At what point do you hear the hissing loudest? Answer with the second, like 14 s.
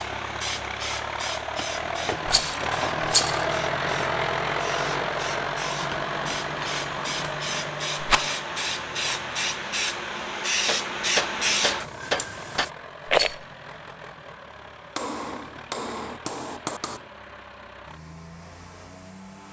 11 s.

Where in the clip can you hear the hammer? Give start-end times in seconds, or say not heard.
1.6-3.0, 5.8-7.7, 10.7-12.7, 14.9-17.1.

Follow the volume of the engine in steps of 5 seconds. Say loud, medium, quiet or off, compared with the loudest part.
loud, loud, quiet, quiet.